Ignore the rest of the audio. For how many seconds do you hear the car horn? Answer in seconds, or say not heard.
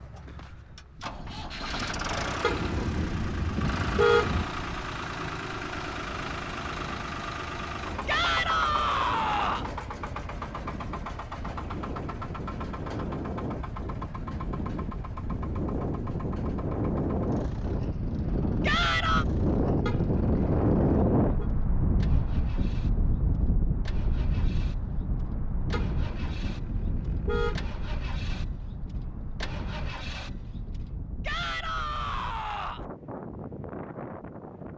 6 s.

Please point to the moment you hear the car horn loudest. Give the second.
4 s.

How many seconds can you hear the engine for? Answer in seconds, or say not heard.
31 s.